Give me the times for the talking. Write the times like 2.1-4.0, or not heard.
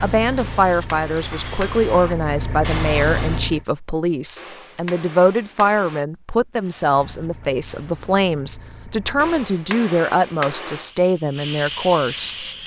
0.0-12.4.